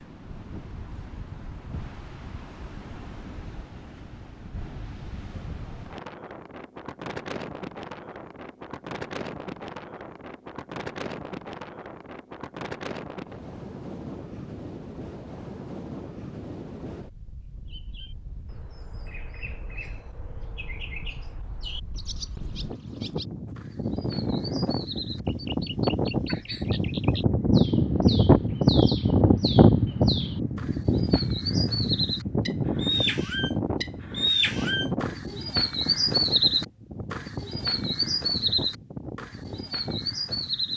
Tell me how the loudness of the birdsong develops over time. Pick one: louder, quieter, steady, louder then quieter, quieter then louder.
louder.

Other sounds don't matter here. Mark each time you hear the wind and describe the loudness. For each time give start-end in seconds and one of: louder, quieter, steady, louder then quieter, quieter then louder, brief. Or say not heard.
0.0-40.7 louder then quieter.